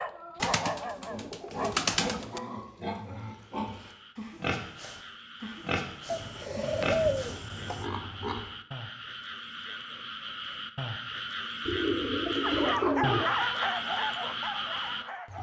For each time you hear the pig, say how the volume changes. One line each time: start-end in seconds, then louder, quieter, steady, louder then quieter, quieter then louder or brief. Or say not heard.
1.1-8.5 steady.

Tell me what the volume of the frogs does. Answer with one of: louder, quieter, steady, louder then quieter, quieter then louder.
louder.